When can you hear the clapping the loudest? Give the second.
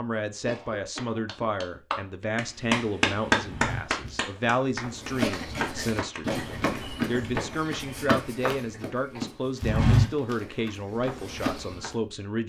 3 s.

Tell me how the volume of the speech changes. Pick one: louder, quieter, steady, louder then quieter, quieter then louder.
steady.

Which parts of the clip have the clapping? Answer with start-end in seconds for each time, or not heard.
0.8-6.8.